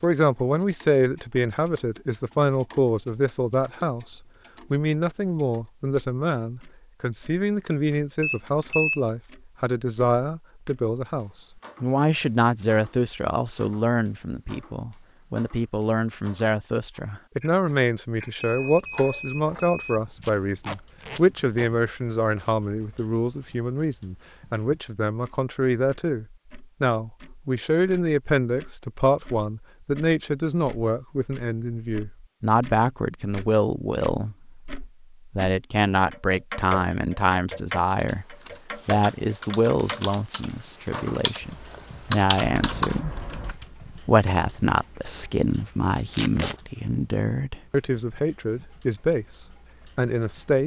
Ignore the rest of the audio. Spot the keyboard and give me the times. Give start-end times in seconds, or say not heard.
37.9-43.6.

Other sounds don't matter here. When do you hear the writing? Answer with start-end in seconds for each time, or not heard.
not heard.